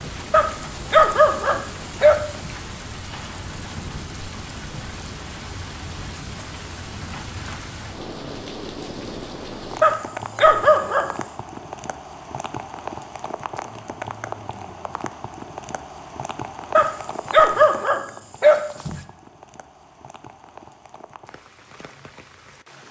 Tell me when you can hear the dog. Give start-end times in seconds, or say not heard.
0.3-2.5, 9.8-11.1, 16.8-19.0.